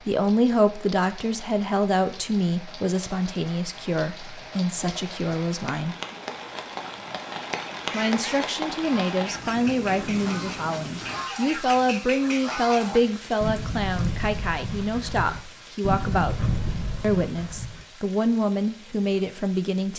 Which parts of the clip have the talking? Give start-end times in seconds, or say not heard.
0.1-6.0, 7.9-16.4, 17.0-19.9.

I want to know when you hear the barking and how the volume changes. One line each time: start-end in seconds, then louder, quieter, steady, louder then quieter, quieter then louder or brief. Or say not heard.
not heard.